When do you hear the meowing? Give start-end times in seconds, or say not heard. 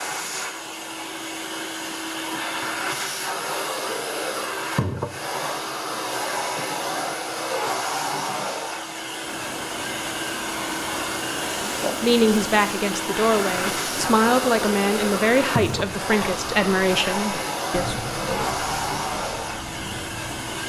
not heard.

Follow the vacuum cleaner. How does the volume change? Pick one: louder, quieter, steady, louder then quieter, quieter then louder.
steady.